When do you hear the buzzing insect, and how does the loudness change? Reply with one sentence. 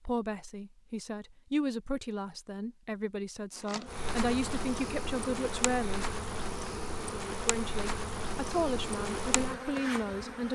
You can hear the buzzing insect from 3.5 to 10.5 s, at a steady volume.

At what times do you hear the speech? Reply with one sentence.
The speech can be heard from 0.1 to 6.2 s and from 7.3 to 10.5 s.